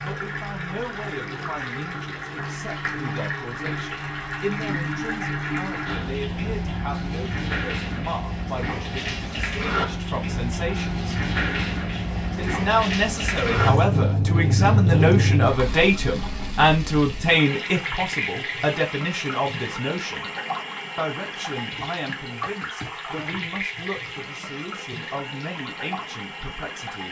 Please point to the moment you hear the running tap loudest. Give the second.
15 s.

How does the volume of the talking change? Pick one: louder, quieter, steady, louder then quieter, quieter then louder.
louder then quieter.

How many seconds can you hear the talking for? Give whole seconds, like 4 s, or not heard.
25 s.